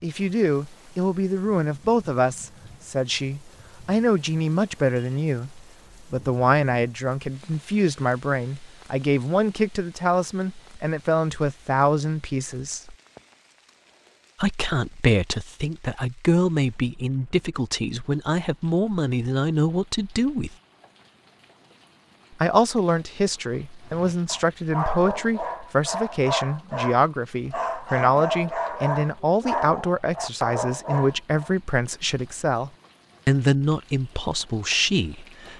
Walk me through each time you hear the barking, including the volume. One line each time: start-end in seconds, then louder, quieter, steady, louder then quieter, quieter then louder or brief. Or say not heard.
23.9-31.5 steady.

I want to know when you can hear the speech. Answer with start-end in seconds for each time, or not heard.
0.0-12.9, 14.4-20.6, 22.4-35.5.